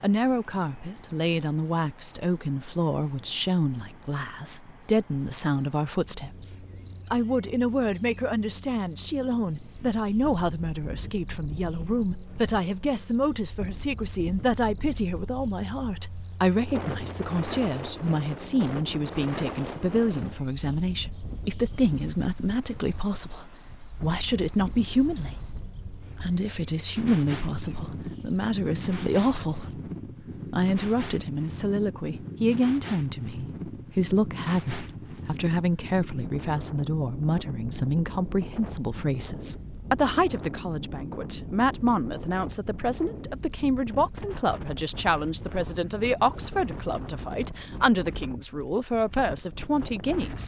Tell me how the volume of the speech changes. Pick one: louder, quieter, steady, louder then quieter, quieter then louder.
steady.